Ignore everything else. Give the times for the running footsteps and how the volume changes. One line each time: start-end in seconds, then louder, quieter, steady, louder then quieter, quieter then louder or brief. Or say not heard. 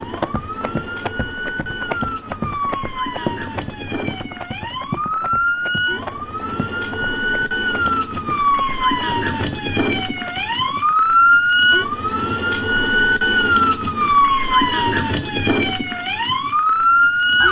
0.0-10.9 quieter.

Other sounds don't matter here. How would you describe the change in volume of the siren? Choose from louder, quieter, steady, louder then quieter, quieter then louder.
louder.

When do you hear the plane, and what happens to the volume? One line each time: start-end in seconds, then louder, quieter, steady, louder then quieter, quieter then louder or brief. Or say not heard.
not heard.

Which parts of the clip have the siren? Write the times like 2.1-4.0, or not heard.
0.0-17.4.